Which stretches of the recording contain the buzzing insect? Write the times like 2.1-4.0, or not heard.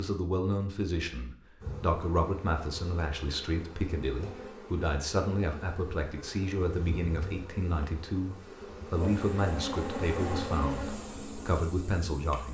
1.6-12.4.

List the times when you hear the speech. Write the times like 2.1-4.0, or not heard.
0.0-12.4.